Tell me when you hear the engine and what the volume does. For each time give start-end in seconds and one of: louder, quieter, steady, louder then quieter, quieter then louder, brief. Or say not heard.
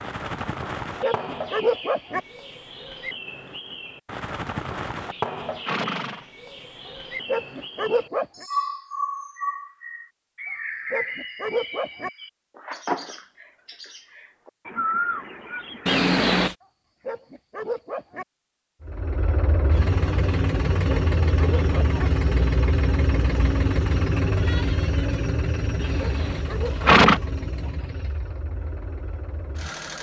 18.8-29.9 quieter.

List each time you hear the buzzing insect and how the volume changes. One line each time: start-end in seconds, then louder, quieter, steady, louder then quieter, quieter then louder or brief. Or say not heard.
not heard.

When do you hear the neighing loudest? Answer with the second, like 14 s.
27 s.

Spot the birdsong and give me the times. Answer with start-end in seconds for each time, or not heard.
0.0-16.1.